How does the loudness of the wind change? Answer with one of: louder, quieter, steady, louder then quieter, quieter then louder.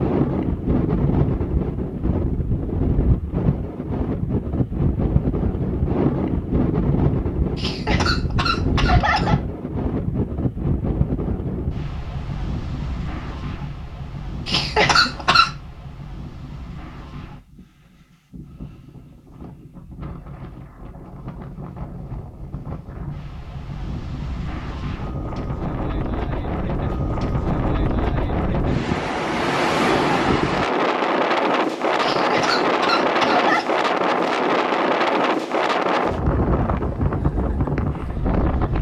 quieter then louder.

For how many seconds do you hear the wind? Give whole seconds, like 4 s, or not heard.
39 s.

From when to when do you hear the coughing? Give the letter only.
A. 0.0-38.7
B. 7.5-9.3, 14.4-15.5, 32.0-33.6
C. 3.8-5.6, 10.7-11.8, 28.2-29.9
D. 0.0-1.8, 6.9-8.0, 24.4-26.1
B.